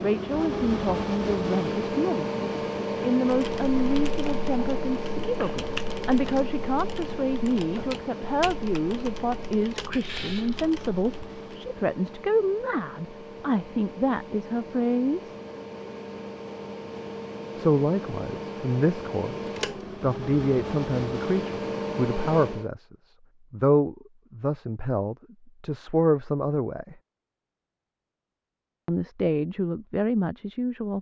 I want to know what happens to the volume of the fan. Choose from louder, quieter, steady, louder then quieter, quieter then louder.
quieter then louder.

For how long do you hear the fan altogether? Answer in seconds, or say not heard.
23 s.